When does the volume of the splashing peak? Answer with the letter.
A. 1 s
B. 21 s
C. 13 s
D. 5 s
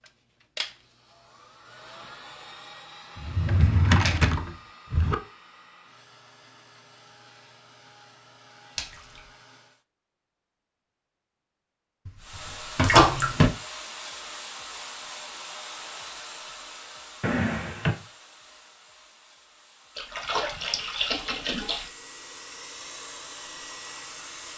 C.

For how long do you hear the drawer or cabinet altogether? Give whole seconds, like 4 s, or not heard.
4 s.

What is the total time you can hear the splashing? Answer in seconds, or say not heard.
3 s.